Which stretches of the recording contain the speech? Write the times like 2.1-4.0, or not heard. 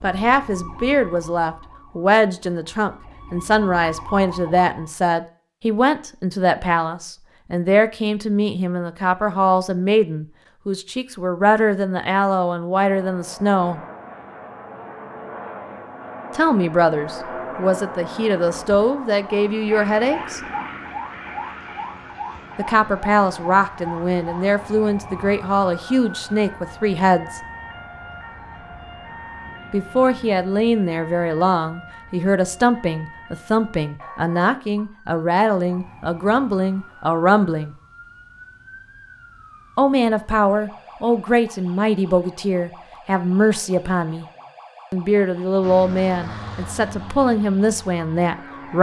0.0-13.8, 16.4-20.4, 22.6-27.4, 29.7-37.8, 39.8-44.2, 44.9-48.7.